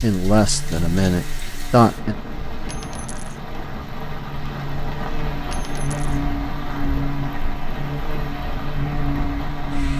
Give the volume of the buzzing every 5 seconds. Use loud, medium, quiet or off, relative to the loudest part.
medium, loud.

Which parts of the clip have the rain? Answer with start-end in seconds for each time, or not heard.
0.0-9.9.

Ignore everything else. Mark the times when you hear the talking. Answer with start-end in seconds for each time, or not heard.
0.0-2.1.